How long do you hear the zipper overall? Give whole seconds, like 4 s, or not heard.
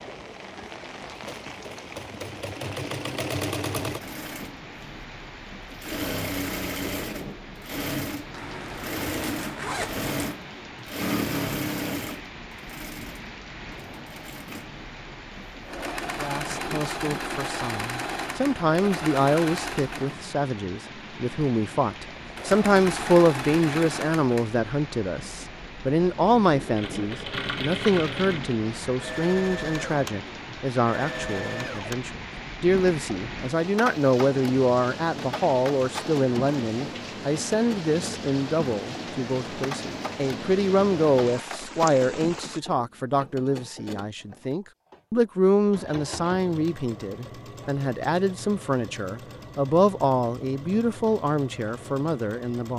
2 s.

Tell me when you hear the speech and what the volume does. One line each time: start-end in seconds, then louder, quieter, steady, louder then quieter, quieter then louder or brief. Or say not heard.
16.2-52.7 steady.